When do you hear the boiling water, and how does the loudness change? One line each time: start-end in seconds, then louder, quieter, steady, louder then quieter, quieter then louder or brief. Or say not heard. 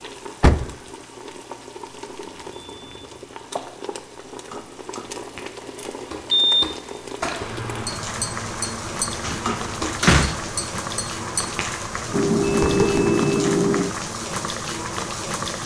0.0-15.6 louder.